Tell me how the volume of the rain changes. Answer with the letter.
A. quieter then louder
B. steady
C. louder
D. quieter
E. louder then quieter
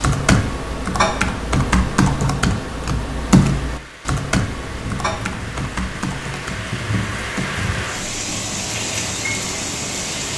C.